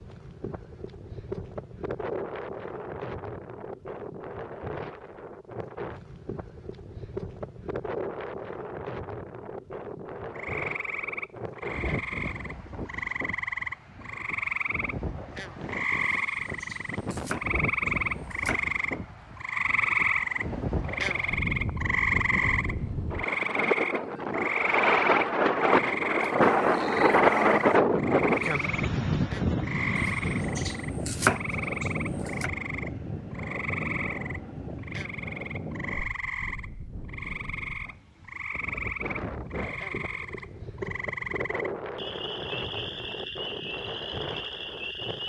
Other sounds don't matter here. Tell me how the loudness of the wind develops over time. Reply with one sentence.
The volume of the wind goes up, then down.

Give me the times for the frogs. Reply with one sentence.
You can hear the frogs from 10.3 to 45.2 s.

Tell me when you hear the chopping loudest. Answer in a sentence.
The loudest moment of the chopping is at 31 seconds.